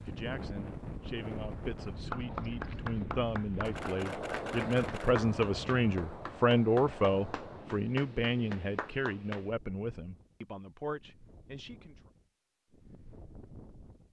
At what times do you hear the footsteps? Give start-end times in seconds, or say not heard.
not heard.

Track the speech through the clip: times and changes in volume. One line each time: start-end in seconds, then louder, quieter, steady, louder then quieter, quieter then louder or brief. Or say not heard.
0.0-12.0 louder then quieter.